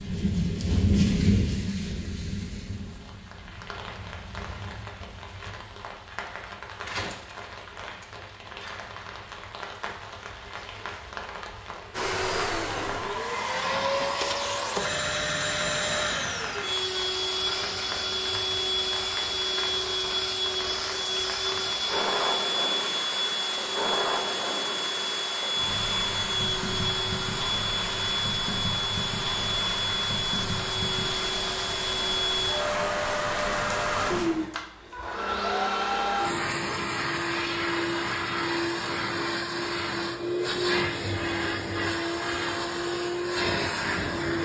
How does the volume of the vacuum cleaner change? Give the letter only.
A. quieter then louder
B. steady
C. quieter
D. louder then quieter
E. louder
B.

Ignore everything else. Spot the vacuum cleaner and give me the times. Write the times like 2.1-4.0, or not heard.
11.9-44.3.